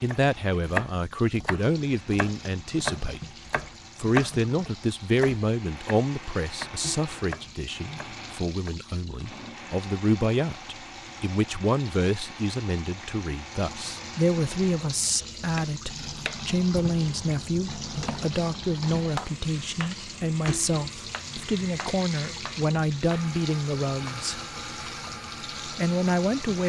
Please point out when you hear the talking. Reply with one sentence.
The talking can be heard from 0.0 to 3.2 s, from 4.0 to 24.4 s and from 25.6 to 26.6 s.